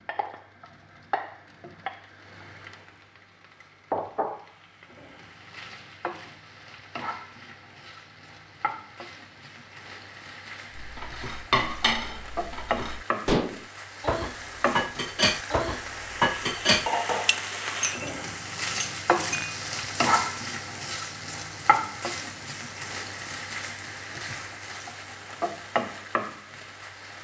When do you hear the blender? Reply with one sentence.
The blender can't be heard in this clip.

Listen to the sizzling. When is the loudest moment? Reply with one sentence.
The loudest moment of the sizzling is at 20 seconds.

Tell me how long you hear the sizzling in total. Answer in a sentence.
You can hear the sizzling for 27 seconds altogether.